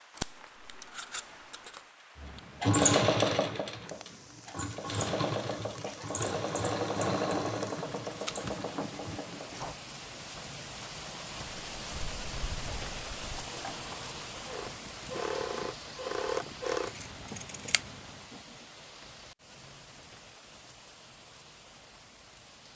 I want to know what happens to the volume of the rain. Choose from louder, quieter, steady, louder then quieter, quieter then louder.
louder then quieter.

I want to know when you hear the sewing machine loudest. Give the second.
3 s.